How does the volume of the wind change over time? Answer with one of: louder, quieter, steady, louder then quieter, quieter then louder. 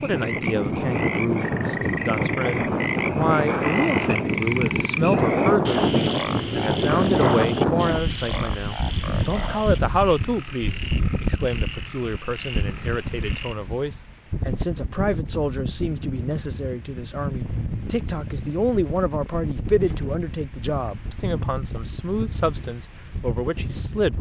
quieter.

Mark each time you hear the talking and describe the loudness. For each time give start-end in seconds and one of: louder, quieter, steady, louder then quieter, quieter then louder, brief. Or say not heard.
0.0-24.1 steady.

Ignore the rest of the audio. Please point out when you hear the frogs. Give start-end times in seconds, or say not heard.
0.0-13.6.